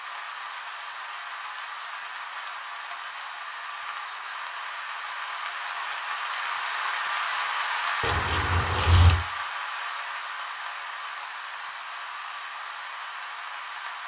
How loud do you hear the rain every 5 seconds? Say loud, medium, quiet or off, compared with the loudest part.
medium, loud, medium.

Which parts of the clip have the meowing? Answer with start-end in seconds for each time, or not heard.
8.0-9.2.